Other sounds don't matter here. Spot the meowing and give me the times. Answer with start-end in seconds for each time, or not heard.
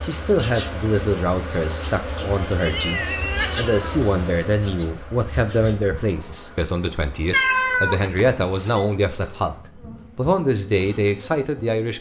2.0-4.0, 7.3-8.8.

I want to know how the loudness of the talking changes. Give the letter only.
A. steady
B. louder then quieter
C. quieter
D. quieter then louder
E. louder
A.